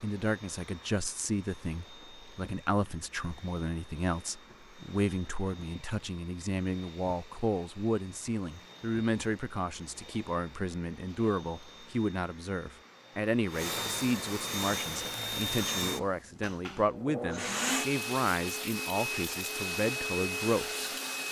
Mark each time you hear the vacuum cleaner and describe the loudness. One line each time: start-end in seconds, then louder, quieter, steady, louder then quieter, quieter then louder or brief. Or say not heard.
0.0-21.2 louder.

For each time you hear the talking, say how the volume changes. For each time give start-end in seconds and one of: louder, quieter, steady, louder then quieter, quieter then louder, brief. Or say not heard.
0.0-20.9 steady.